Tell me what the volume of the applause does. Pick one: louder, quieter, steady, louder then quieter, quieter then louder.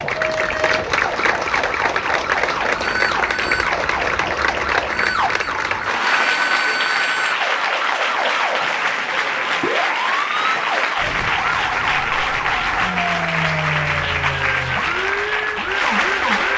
steady.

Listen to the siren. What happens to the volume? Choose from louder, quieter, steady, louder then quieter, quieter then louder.
steady.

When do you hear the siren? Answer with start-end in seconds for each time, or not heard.
0.0-16.5.